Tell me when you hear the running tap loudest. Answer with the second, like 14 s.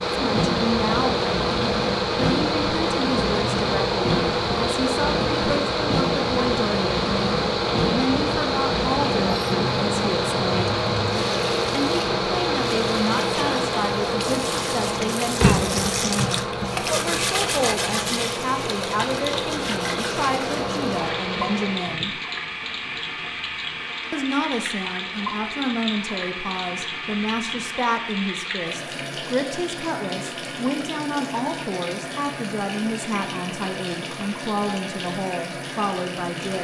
16 s.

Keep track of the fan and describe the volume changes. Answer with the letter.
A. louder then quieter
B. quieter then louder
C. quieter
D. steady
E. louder
C.